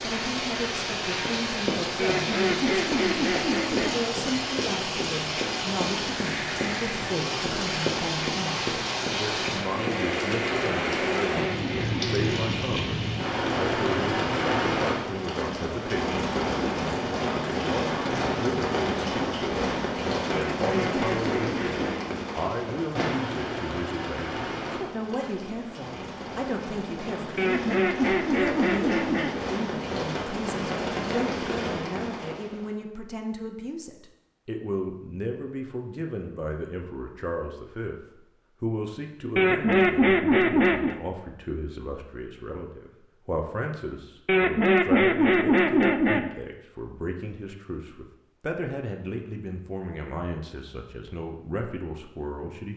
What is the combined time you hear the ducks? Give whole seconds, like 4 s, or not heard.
11 s.